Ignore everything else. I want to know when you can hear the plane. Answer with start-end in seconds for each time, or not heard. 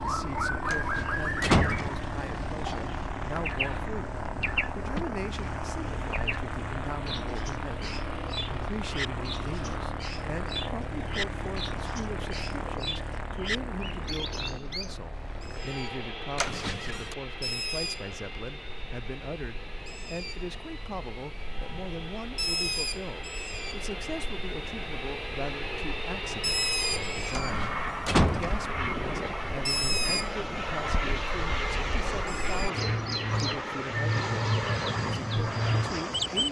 0.0-36.4.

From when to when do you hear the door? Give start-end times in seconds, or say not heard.
0.7-2.0, 16.4-17.1, 27.4-28.6.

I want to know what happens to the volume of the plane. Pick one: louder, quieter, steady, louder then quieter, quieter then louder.
quieter then louder.